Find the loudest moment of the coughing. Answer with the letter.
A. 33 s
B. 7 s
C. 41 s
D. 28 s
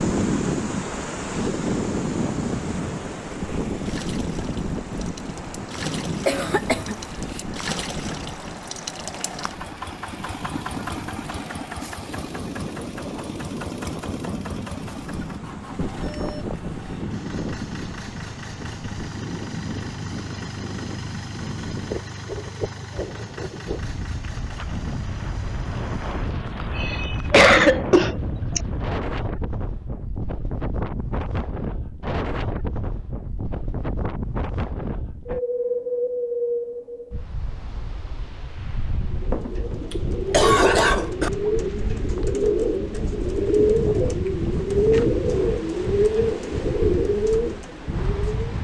D.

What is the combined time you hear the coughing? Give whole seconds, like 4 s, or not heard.
5 s.